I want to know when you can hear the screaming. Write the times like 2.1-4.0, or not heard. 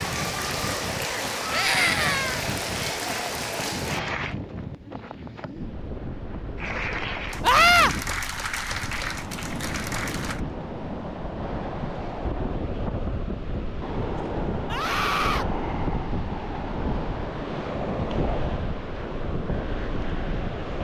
1.5-2.5, 7.4-7.9, 14.7-15.4.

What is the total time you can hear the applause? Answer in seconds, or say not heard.
8 s.